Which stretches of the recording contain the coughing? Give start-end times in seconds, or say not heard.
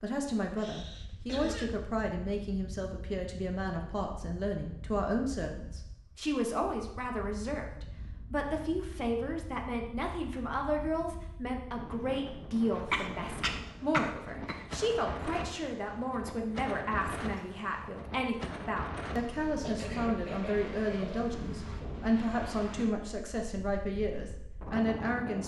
0.6-1.7, 12.9-14.7, 19.6-21.3.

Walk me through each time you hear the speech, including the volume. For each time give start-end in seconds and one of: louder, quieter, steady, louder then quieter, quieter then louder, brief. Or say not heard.
0.0-25.4 steady.